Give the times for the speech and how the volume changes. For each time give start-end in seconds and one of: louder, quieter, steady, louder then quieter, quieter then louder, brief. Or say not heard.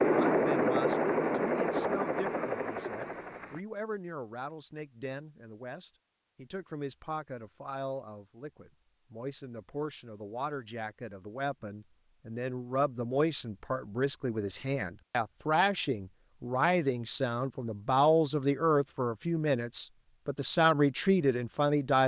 0.0-22.0 louder.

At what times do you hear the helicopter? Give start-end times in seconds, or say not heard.
0.0-3.6.